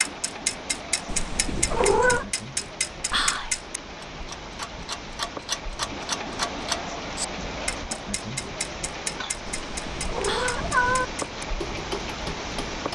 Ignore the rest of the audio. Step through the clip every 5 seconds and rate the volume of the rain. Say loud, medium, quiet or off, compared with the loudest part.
medium, loud, loud.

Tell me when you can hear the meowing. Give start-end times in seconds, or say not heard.
1.1-2.2, 9.4-11.1.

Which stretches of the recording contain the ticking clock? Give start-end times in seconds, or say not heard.
0.0-12.8.